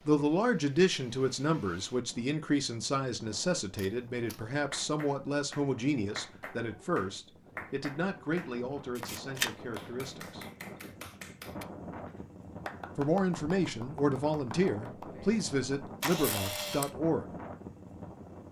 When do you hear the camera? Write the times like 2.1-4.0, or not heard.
3.8-4.5, 8.9-9.6, 16.0-16.9.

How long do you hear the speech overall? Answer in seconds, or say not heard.
15 s.